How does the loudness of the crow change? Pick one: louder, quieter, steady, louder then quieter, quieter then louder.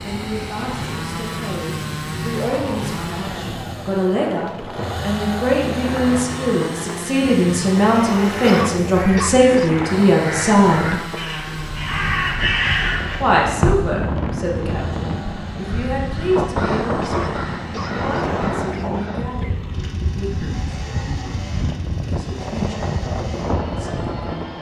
louder then quieter.